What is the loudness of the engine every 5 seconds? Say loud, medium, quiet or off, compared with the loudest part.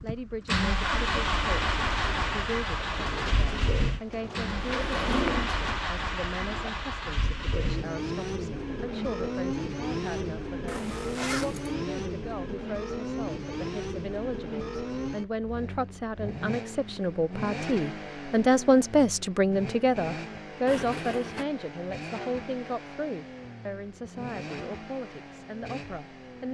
loud, loud, loud, medium, medium, quiet.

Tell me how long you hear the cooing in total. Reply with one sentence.
The cooing can be heard for 5 seconds in total.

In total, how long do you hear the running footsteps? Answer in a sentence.
The running footsteps can't be heard in this clip.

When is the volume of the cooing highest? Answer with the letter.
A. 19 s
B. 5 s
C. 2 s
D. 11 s
B.